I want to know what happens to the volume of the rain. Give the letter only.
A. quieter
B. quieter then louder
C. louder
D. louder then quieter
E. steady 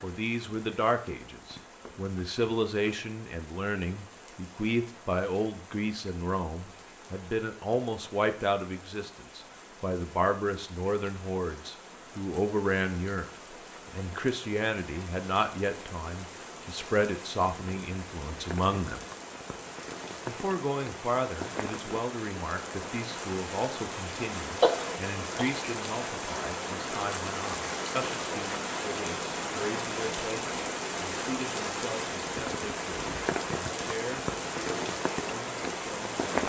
C.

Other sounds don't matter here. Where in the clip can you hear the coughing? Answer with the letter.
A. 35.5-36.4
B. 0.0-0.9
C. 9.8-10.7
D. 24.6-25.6
D.